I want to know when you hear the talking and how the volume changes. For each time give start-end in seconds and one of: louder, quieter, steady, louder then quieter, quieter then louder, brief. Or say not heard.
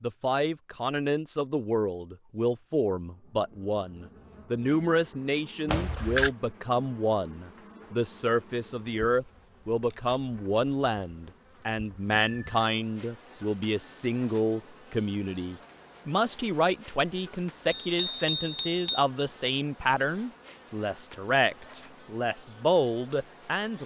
0.0-23.8 steady.